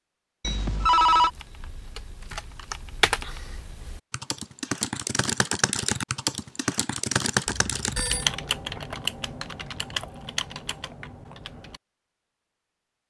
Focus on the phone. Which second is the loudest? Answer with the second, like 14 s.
1 s.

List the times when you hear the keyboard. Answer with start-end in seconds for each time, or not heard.
0.8-11.8.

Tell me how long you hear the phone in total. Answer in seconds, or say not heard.
2 s.